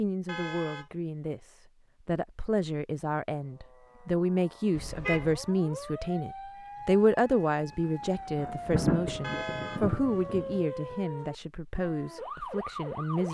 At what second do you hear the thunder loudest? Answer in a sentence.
The loudest moment of the thunder is at 9 seconds.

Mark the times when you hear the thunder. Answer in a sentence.
The thunder can be heard from 8.0 to 10.7 s.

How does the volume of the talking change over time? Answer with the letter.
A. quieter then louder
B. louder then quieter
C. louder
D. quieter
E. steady
B.